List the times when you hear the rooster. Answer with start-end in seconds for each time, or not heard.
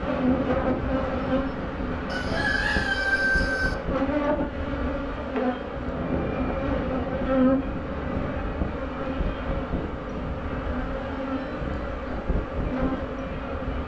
2.1-3.8.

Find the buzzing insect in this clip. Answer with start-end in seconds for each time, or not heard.
0.0-13.8.